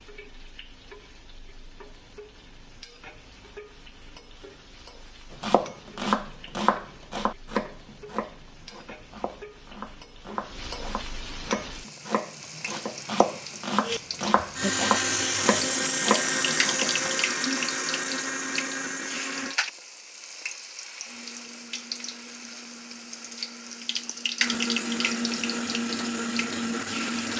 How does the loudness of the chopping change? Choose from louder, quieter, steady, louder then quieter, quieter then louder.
quieter then louder.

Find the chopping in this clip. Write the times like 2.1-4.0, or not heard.
5.4-17.1.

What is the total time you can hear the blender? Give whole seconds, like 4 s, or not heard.
12 s.